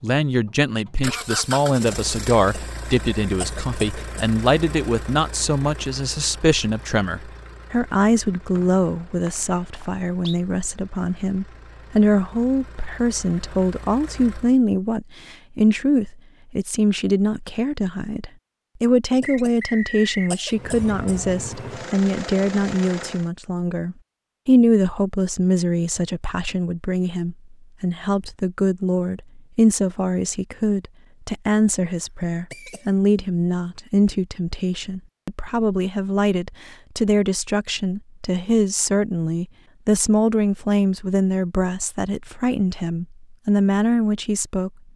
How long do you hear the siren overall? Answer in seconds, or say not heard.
not heard.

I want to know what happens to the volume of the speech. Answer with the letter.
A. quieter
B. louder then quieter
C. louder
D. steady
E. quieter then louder
D.